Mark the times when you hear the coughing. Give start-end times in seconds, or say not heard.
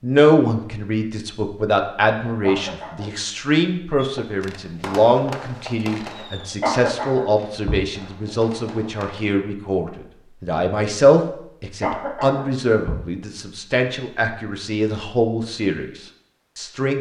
2.4-3.1, 6.6-7.8, 11.8-12.9.